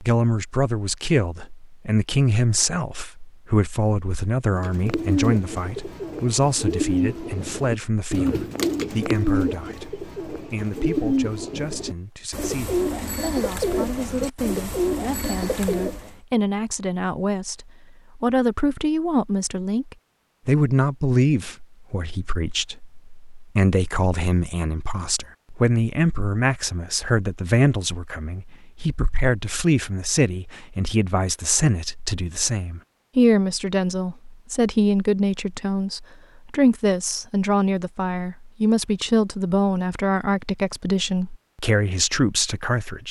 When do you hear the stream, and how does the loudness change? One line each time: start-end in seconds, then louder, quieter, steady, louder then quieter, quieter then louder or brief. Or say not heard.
not heard.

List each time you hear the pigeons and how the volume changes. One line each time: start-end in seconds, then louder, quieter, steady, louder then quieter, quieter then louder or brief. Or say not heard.
4.5-16.1 steady.